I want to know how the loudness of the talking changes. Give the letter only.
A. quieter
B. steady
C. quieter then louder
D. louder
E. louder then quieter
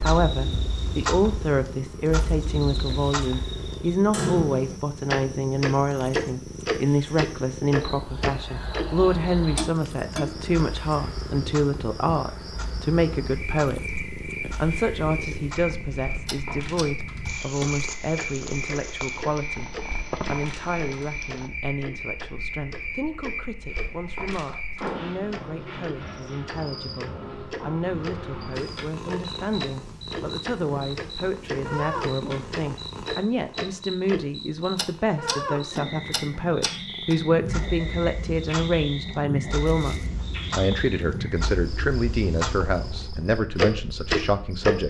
C.